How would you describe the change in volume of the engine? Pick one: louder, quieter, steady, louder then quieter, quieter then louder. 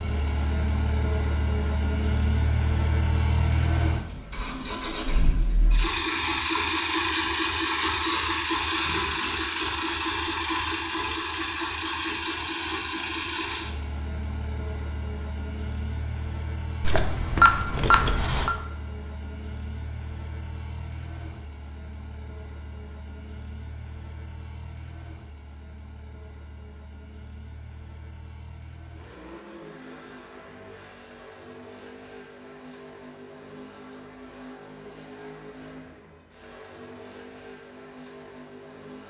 quieter.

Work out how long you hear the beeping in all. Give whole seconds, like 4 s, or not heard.
2 s.